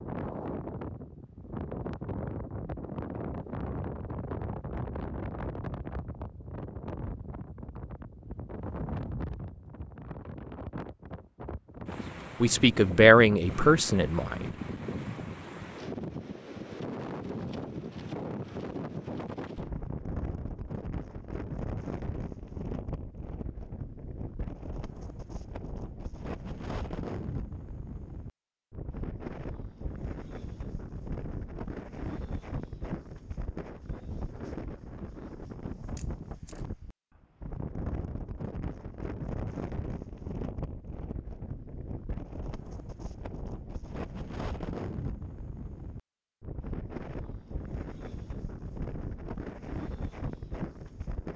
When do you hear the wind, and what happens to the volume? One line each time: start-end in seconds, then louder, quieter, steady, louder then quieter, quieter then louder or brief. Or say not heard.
0.0-51.3 steady.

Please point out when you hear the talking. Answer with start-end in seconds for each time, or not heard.
12.4-14.4.